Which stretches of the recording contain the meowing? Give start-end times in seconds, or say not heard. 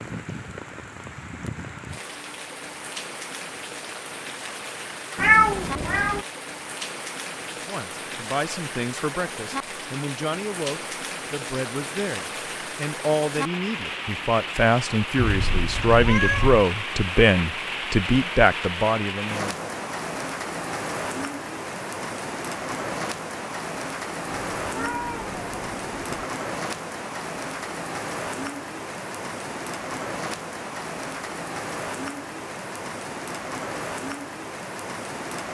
5.2-6.2, 15.2-16.6, 24.3-26.3.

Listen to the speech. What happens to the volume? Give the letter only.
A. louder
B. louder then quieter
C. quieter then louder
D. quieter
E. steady
A.